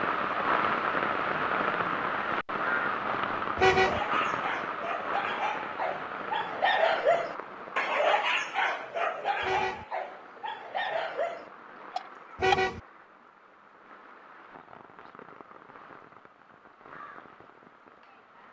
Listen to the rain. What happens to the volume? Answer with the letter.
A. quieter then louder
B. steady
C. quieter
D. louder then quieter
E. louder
C.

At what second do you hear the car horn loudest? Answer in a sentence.
The loudest moment of the car horn is at 4 seconds.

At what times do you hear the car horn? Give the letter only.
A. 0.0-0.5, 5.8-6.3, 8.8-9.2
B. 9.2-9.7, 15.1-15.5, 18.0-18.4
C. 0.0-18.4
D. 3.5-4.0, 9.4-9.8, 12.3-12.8
D.